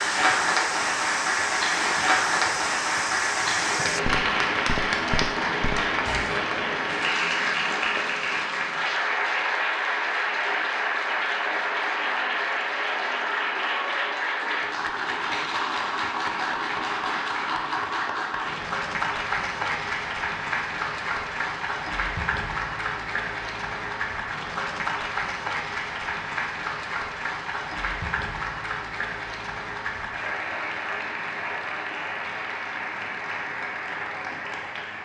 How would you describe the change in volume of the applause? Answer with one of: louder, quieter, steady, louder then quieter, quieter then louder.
quieter.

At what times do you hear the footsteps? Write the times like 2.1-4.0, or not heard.
0.0-6.4.